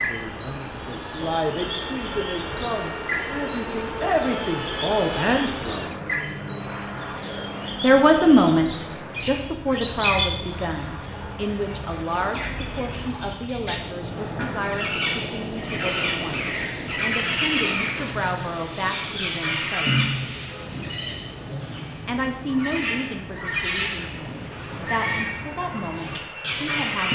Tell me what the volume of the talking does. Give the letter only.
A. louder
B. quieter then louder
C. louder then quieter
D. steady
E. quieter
C.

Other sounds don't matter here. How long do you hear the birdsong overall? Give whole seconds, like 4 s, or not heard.
27 s.